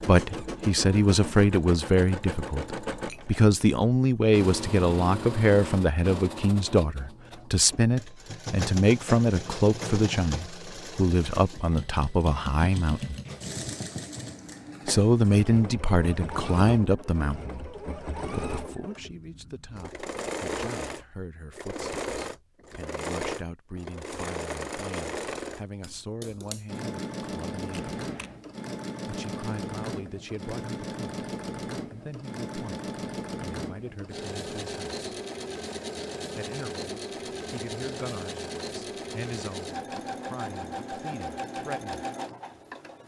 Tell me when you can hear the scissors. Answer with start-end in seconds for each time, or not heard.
27.7-28.4.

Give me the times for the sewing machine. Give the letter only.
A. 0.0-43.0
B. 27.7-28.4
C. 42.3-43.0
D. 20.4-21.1
A.